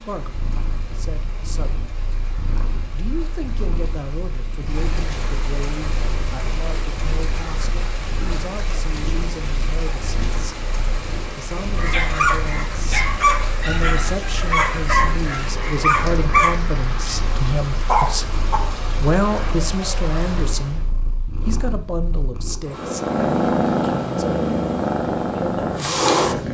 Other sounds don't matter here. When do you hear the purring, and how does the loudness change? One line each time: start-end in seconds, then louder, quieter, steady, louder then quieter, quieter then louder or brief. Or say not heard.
0.1-26.4 louder.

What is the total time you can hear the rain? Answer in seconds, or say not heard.
21 s.